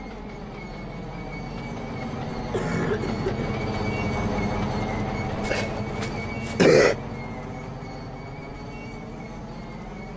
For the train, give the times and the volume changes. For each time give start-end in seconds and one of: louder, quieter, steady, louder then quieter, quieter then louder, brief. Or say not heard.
0.0-10.1 louder then quieter.